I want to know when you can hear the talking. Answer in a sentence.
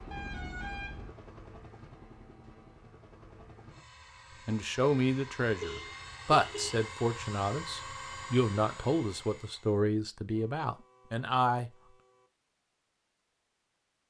The talking can be heard from 4.5 to 11.7 s.